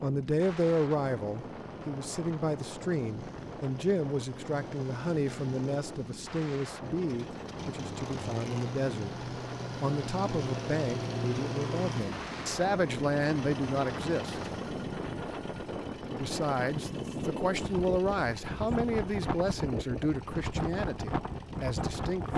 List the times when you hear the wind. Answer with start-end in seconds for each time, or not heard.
0.0-22.3.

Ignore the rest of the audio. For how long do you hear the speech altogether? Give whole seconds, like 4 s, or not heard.
20 s.